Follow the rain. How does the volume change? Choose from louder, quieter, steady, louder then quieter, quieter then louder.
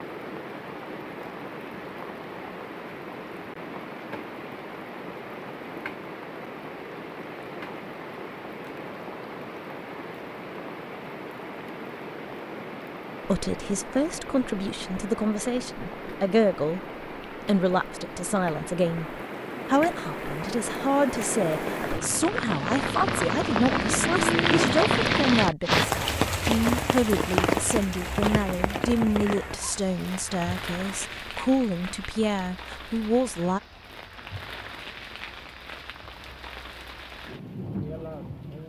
louder then quieter.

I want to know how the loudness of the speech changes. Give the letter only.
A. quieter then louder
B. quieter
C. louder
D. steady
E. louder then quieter
D.